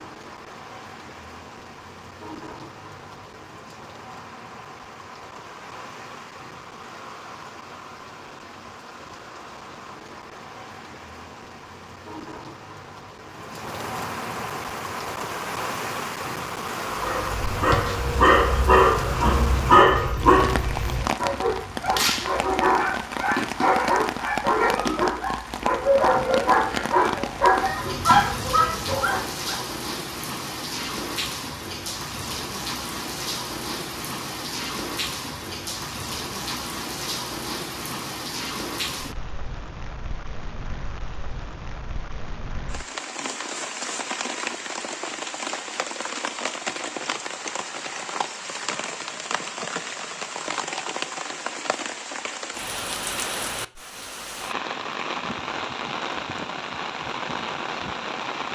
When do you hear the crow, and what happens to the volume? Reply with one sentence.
The crow can't be heard in this clip.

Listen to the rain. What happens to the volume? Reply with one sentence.
The loudness of the rain goes up.